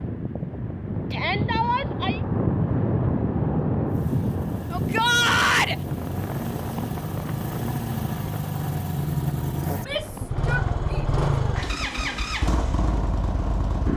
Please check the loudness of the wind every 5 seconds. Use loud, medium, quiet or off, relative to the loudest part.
loud, medium, quiet.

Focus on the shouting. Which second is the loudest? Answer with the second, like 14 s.
5 s.